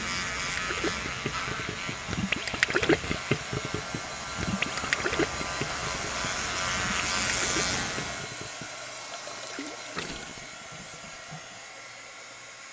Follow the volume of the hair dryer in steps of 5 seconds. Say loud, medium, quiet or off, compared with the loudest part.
loud, loud, medium.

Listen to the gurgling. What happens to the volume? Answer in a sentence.
The volume of the gurgling goes down.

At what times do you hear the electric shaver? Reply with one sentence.
You can hear the electric shaver from 0.0 to 8.3 s.